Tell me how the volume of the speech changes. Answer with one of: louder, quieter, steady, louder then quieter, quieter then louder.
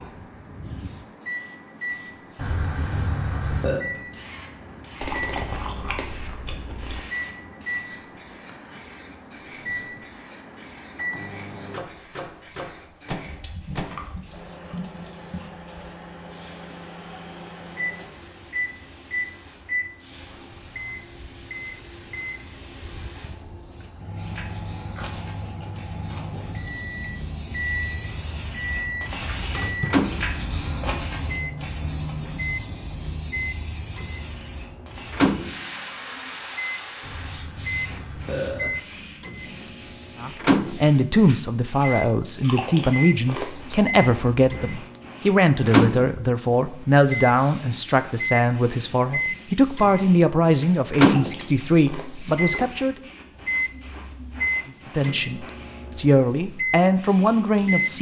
steady.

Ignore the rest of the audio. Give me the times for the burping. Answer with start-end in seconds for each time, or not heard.
2.4-3.9, 37.0-38.8.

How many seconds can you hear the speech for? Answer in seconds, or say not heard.
16 s.